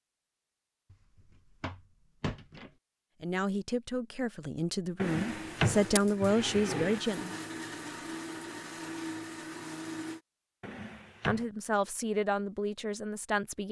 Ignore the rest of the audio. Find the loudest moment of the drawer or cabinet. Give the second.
6 s.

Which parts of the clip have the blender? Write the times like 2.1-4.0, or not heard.
5.0-10.2.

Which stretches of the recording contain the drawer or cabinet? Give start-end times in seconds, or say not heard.
0.9-2.7, 5.0-7.0, 10.6-11.4.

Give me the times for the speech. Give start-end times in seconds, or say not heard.
3.2-7.4, 11.2-13.6.